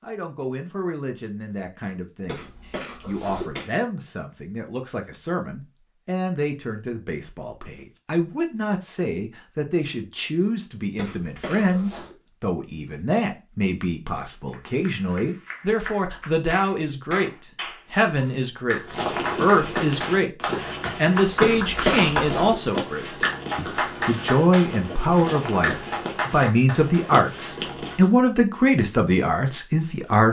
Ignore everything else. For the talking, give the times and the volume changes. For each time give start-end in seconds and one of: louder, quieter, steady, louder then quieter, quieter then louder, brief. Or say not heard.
0.0-30.2 louder.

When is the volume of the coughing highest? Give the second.
22 s.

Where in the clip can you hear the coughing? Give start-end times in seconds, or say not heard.
2.2-3.7, 10.9-12.2, 21.4-22.6.